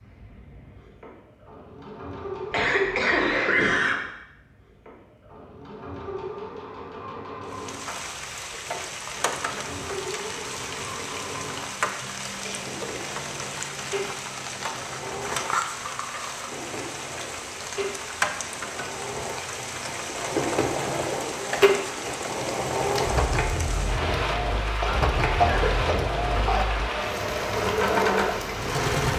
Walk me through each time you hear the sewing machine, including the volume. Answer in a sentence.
You can hear the sewing machine from 0.0 to 29.1 s, getting louder.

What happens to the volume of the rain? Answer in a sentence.
The loudness of the rain stays about the same.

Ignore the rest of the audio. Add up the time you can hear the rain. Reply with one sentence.
The rain can be heard for 22 seconds in total.